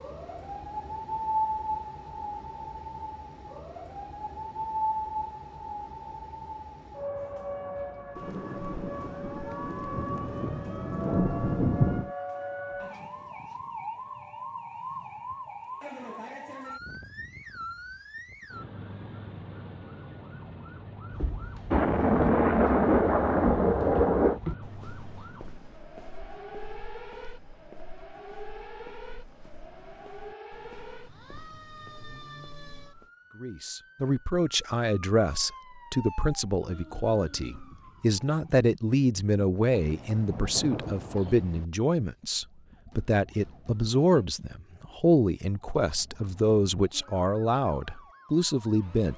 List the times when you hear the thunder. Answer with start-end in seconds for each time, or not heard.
8.2-12.1, 21.7-24.4, 39.7-41.6.